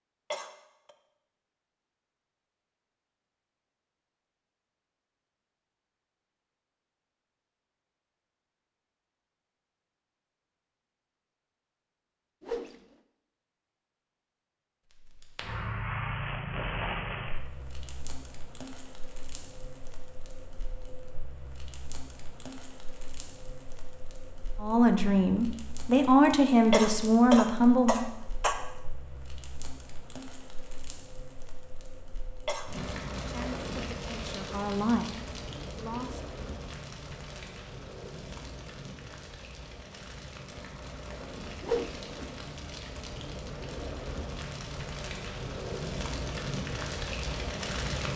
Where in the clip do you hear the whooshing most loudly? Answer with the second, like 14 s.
42 s.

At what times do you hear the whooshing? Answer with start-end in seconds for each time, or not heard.
12.4-12.8, 41.6-42.4.